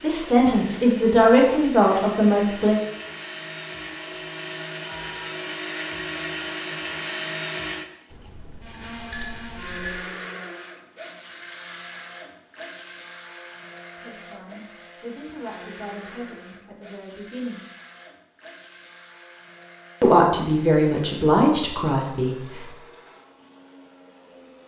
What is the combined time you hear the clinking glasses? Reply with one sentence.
The clinking glasses can be heard for 2 seconds in total.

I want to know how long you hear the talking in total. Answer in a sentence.
You can hear the talking for 9 seconds altogether.